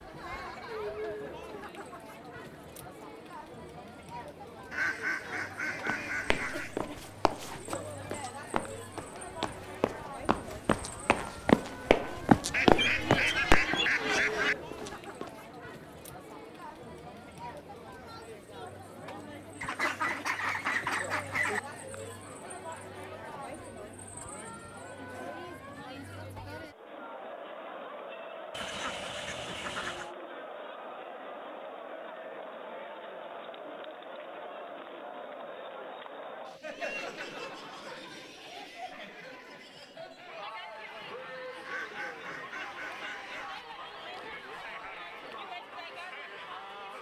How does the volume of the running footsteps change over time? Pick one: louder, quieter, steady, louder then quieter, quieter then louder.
louder then quieter.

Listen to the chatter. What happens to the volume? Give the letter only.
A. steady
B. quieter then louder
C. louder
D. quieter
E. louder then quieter
A.